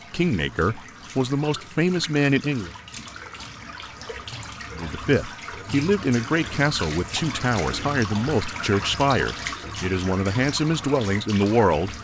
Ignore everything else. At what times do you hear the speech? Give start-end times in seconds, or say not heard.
0.1-2.7, 4.8-11.9.